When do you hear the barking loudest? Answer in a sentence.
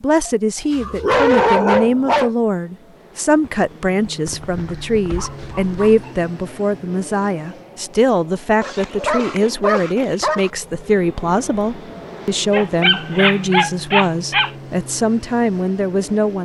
The volume of the barking peaks at 1 second.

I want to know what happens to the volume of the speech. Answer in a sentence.
The loudness of the speech stays about the same.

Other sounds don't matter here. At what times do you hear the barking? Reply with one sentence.
The barking can be heard from 0.2 to 2.3 s, from 4.2 to 6.2 s, from 8.6 to 10.5 s and from 12.5 to 14.5 s.